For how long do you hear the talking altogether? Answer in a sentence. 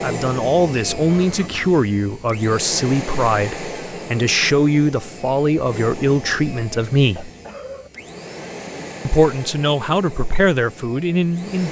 You can hear the talking for 10 seconds altogether.